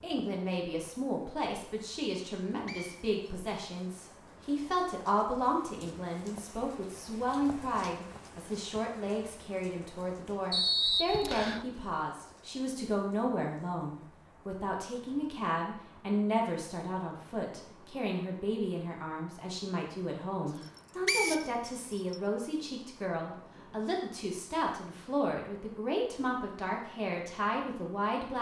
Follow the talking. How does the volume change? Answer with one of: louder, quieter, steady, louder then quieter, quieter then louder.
steady.